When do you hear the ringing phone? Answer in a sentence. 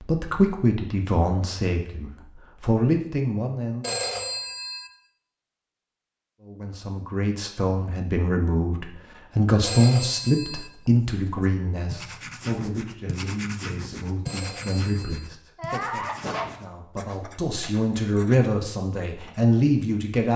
The ringing phone can be heard from 3.8 to 4.8 s, from 9.6 to 10.7 s and from 14.2 to 15.3 s.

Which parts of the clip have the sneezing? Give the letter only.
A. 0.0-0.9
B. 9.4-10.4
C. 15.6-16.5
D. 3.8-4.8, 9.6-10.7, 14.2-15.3
C.